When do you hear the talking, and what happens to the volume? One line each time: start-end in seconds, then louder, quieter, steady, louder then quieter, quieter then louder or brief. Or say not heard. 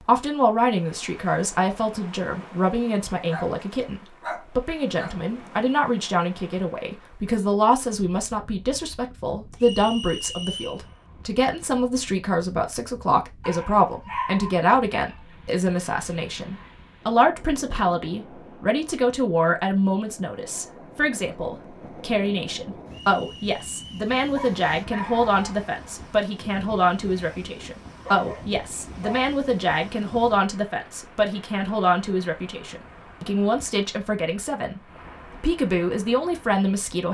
0.0-37.0 steady.